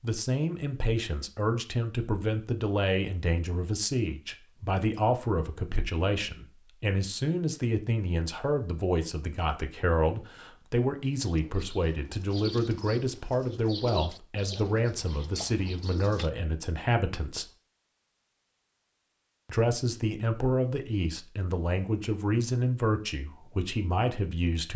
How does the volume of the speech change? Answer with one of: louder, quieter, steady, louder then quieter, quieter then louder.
steady.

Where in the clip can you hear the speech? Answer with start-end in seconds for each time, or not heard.
0.0-17.4, 19.4-24.7.